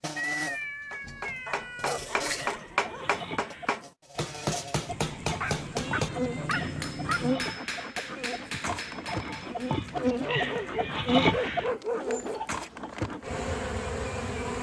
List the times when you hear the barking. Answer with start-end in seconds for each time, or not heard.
1.4-3.2, 5.4-7.2, 10.2-12.4.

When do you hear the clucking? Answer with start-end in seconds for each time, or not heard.
2.3-13.1.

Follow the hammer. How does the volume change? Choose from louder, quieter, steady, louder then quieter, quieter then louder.
quieter.